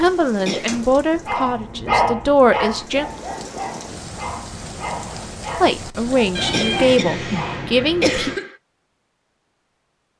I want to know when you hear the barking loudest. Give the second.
2 s.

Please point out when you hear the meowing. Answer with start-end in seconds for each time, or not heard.
6.3-8.3.